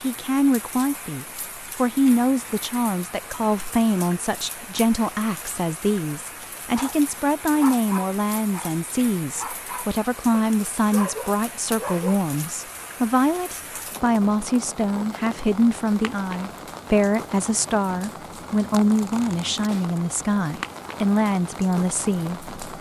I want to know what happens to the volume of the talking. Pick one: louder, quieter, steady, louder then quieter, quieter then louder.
steady.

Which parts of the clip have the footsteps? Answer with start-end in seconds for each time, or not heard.
not heard.